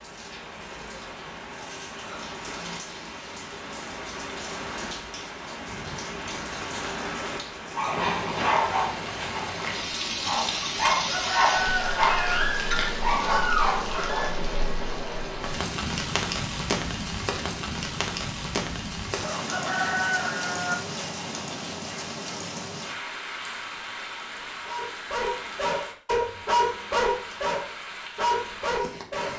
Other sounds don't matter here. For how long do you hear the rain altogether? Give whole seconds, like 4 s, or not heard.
29 s.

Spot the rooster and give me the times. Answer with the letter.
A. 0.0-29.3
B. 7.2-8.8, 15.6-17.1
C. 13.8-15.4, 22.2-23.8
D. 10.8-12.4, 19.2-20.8
D.